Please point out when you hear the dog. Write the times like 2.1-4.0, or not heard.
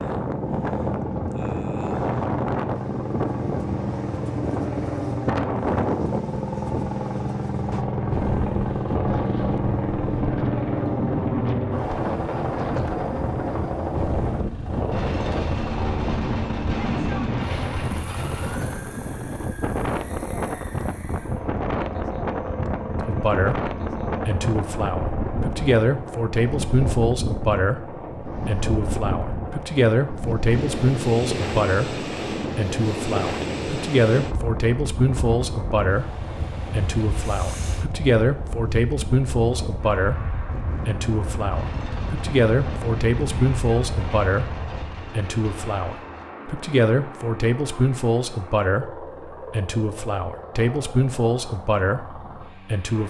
not heard.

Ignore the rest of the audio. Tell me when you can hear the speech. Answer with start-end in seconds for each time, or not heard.
23.0-53.0.